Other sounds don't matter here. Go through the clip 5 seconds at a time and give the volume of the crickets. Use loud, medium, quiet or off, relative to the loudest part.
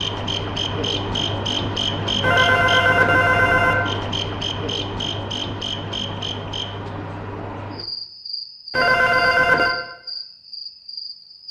loud, medium, medium.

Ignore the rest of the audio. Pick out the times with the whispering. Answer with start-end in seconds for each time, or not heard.
not heard.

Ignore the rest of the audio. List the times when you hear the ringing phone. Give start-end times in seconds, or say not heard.
2.2-3.8, 8.7-9.8.